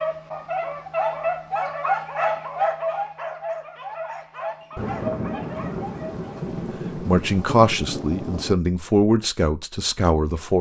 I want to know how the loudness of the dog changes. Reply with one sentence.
The volume of the dog goes down.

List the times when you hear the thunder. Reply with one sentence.
You can hear the thunder from 4.8 to 8.6 s.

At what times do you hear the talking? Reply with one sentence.
The talking can be heard from 6.5 to 10.5 s.